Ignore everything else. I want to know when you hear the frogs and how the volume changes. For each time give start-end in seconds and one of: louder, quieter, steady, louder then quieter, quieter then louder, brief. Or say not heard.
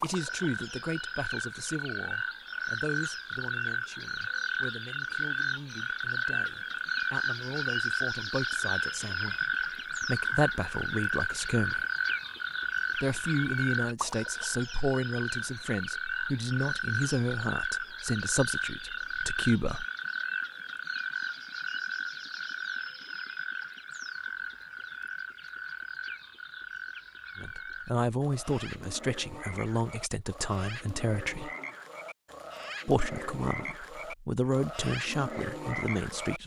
0.0-36.4 quieter.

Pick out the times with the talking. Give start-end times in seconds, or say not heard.
0.0-11.8, 12.9-19.9, 27.4-31.5, 32.9-36.4.